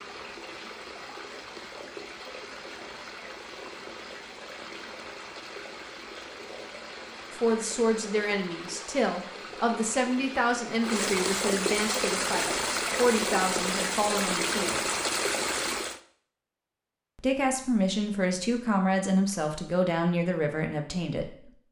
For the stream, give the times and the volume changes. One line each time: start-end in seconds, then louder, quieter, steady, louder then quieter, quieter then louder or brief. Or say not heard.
0.0-16.0 louder.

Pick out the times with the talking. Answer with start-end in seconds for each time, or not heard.
7.3-14.8, 17.1-21.6.